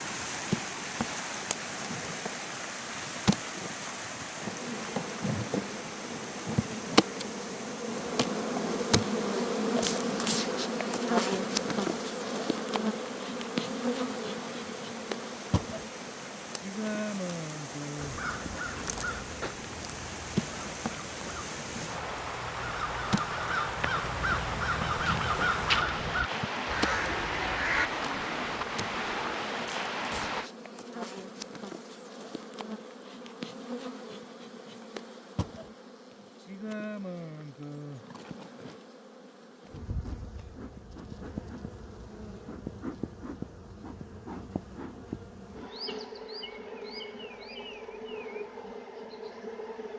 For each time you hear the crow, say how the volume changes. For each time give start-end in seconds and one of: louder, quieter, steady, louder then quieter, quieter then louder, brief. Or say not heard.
17.9-27.9 quieter then louder.